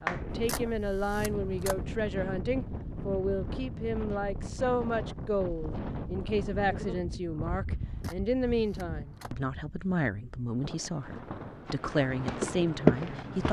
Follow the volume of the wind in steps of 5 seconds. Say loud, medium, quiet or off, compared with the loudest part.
loud, loud, medium.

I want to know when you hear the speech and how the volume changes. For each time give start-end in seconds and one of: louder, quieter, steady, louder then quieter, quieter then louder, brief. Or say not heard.
0.0-13.4 steady.